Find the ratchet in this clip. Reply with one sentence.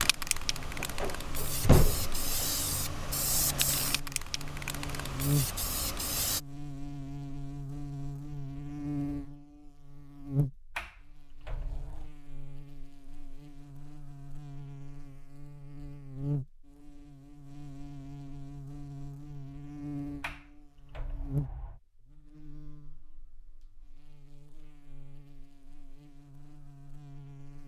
The ratchet can't be heard in this clip.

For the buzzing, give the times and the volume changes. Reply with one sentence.
The buzzing can be heard from 0.2 to 27.6 s, getting quieter.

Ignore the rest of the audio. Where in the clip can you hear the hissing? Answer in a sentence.
The hissing can be heard from 0.0 to 6.4 s.